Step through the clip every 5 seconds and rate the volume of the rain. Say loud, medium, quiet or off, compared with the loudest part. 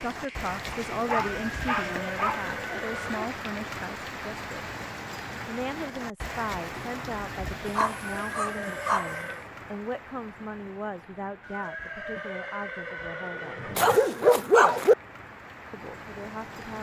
loud, loud, quiet, medium.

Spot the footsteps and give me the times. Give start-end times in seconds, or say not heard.
not heard.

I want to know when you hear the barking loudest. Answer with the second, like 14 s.
14 s.